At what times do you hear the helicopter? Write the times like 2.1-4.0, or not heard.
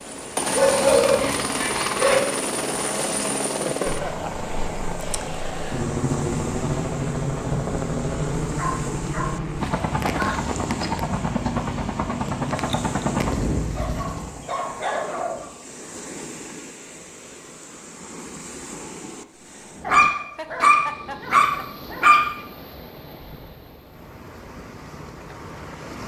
0.0-14.4.